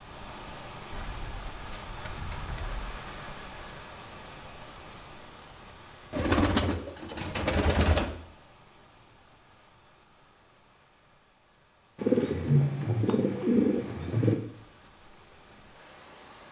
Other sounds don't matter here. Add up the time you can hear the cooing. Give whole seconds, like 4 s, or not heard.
7 s.